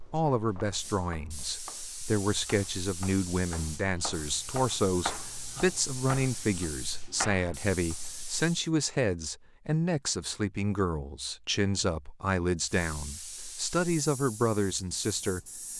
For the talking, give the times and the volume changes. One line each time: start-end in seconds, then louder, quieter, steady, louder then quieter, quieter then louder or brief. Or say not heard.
0.1-15.6 steady.